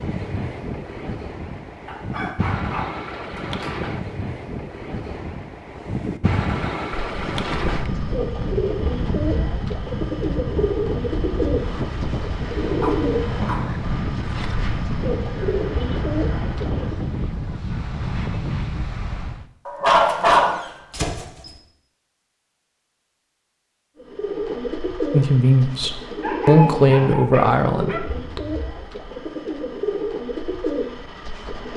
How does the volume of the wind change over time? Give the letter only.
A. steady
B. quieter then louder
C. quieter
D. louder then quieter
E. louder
A.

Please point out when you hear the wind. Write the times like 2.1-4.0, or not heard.
0.0-19.4.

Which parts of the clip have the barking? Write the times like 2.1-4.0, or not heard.
1.9-3.7, 12.8-13.7, 19.6-21.5, 26.2-28.0.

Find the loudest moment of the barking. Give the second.
20 s.